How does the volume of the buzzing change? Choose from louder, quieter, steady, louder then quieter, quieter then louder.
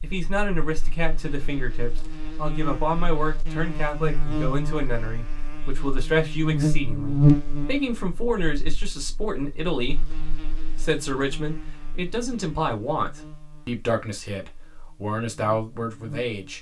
louder then quieter.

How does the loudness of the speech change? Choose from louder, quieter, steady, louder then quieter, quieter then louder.
steady.